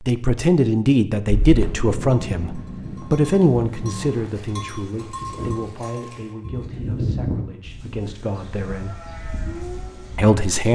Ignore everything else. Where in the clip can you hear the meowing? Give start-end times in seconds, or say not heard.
not heard.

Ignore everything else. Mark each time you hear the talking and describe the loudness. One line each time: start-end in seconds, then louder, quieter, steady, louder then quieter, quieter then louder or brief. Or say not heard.
0.0-8.9 quieter
10.2-10.6 brief.